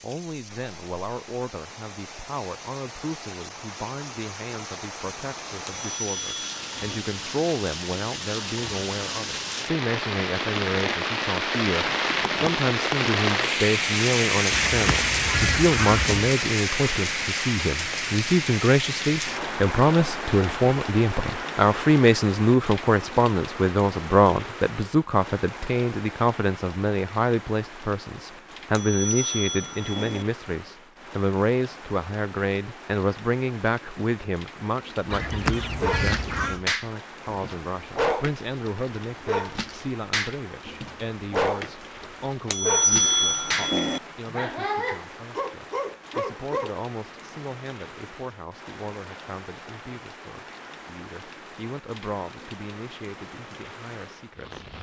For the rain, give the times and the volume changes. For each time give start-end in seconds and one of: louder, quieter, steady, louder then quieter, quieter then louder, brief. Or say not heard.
0.0-54.7 louder then quieter.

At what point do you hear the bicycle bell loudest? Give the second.
43 s.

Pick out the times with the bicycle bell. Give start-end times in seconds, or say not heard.
5.7-7.0, 28.7-30.2, 42.5-44.0.